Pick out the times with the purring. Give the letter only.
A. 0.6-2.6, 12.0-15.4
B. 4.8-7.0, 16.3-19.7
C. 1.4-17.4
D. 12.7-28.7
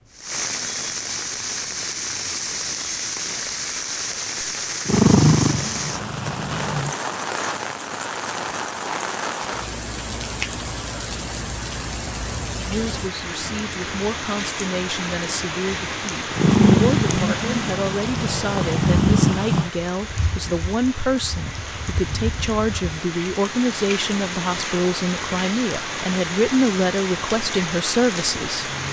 B.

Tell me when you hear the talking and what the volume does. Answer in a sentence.
You can hear the talking from 12.7 to 28.7 s, getting louder.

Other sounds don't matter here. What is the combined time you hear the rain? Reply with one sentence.
You can hear the rain for 29 seconds altogether.